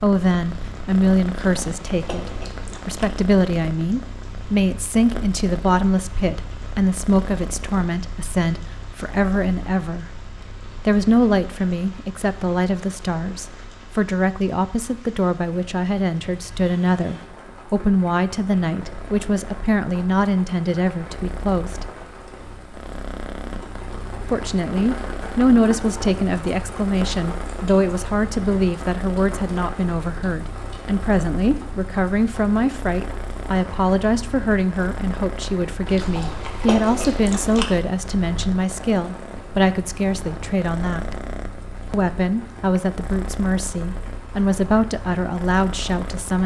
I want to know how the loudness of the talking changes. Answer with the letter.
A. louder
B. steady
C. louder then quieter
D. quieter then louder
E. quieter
B.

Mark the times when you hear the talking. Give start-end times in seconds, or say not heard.
0.0-10.1, 10.8-21.9, 24.3-41.1, 41.9-46.4.